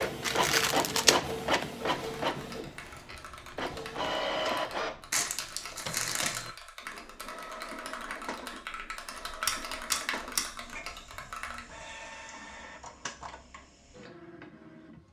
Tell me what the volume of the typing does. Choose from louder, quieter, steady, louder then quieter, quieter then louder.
louder.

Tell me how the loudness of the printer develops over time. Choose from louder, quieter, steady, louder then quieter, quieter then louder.
quieter.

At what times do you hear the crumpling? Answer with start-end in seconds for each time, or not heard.
5.1-6.5.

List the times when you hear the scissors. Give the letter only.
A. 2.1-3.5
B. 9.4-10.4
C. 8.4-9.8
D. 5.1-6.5
B.